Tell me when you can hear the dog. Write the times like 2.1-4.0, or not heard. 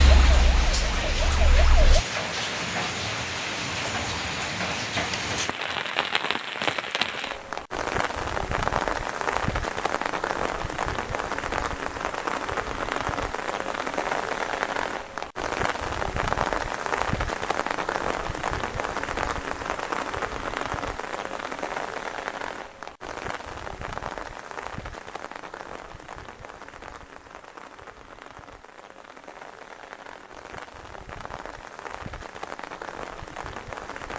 not heard.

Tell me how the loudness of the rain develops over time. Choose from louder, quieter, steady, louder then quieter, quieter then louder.
quieter.